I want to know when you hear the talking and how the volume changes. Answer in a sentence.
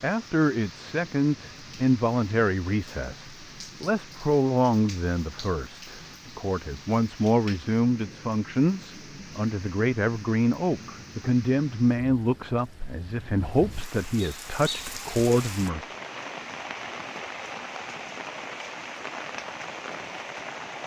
The talking can be heard from 0.0 to 15.9 s, at a steady volume.